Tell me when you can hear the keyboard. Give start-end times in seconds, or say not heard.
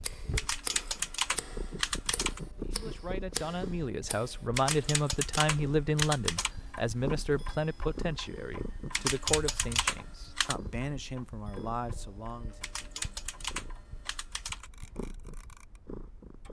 0.3-2.4, 4.5-6.5, 8.9-10.6, 12.6-14.7.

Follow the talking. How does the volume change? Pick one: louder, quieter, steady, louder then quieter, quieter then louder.
quieter.